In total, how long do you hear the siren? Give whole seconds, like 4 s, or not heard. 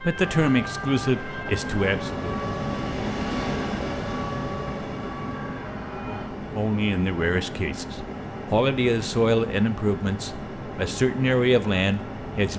6 s.